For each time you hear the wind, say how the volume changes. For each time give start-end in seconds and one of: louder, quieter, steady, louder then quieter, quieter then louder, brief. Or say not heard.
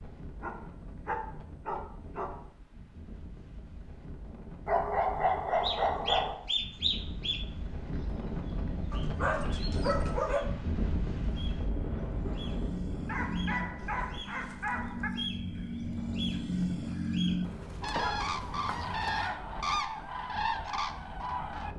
0.0-21.7 louder then quieter.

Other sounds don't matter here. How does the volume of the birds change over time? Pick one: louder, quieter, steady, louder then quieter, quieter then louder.
quieter then louder.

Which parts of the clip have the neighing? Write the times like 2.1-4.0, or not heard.
17.4-19.4.